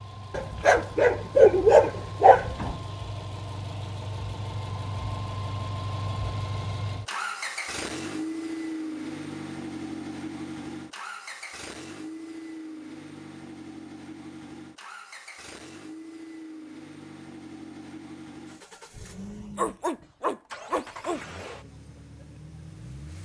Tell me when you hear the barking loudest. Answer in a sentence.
The loudest moment of the barking is at 2 seconds.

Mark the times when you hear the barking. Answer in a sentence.
The barking can be heard from 0.3 to 2.8 s and from 19.6 to 21.2 s.